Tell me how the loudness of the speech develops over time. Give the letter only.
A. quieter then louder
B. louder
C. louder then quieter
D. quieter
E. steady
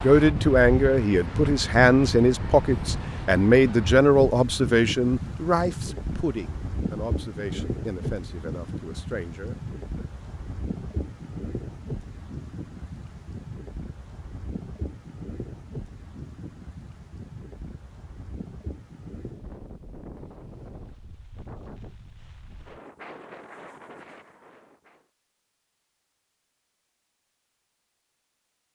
D.